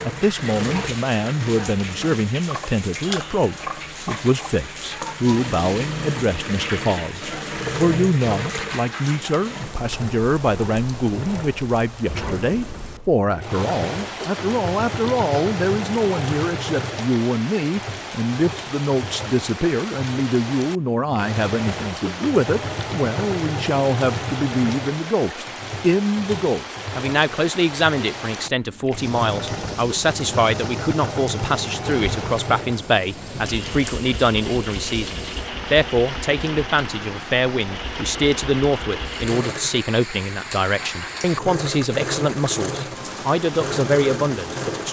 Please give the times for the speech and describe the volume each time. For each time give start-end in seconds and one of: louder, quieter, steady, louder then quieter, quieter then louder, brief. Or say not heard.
0.0-44.8 steady.